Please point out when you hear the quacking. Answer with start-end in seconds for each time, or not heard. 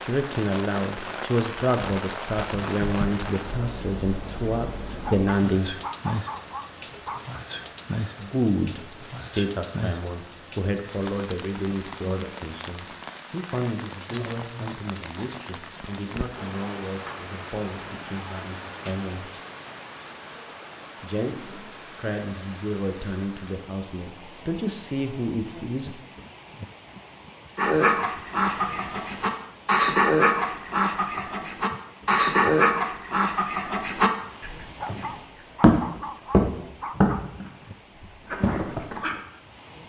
27.6-39.2.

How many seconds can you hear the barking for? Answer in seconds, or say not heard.
5 s.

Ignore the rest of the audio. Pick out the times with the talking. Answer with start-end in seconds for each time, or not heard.
0.0-5.8, 8.2-19.3, 21.0-25.9.